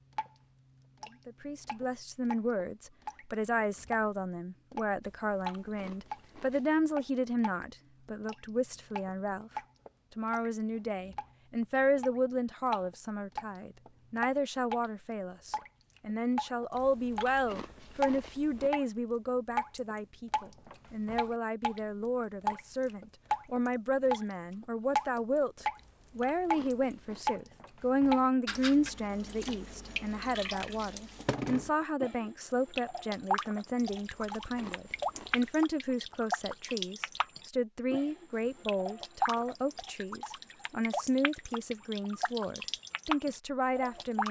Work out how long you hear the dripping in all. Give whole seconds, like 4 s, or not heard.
43 s.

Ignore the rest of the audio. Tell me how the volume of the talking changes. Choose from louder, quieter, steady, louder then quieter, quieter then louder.
steady.